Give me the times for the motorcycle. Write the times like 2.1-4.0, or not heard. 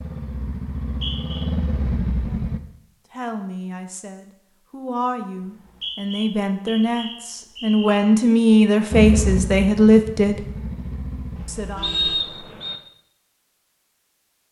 0.0-2.6, 8.9-11.4.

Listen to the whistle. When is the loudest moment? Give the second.
12 s.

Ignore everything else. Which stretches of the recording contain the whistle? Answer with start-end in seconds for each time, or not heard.
0.8-1.4, 5.4-8.0, 11.8-12.8.